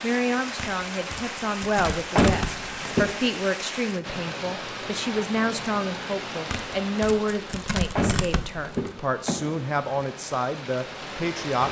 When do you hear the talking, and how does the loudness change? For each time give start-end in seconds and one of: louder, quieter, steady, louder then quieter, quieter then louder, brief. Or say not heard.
0.0-11.6 steady.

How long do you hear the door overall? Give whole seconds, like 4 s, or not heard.
3 s.